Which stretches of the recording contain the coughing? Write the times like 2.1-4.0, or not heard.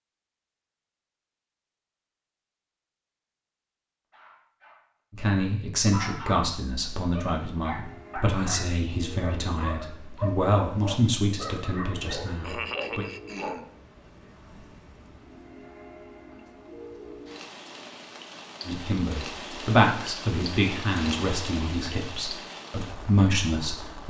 12.4-13.7.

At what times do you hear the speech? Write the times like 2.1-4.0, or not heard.
5.1-13.1, 18.6-24.0.